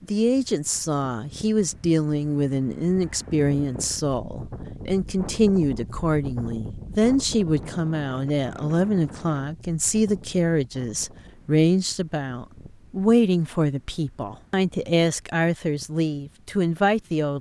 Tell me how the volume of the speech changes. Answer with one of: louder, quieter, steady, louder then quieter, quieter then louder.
steady.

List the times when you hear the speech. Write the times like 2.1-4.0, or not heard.
0.0-17.3.